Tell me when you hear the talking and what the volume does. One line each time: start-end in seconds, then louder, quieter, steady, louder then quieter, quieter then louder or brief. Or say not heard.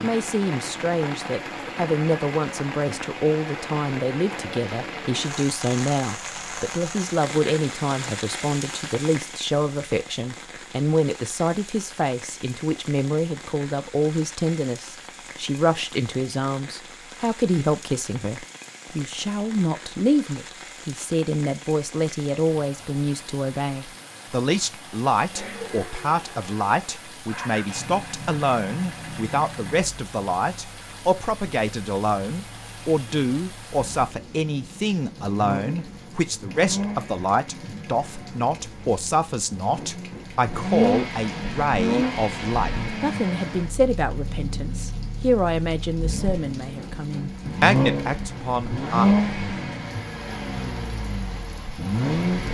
0.0-49.0 steady.